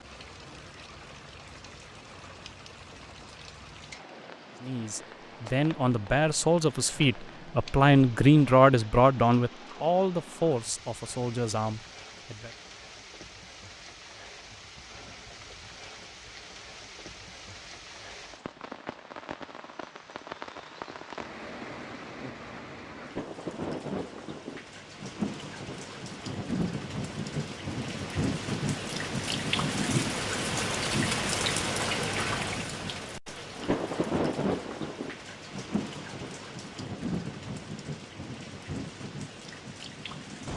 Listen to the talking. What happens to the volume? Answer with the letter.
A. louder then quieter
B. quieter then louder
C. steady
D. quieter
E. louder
A.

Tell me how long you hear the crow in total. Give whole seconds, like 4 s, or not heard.
not heard.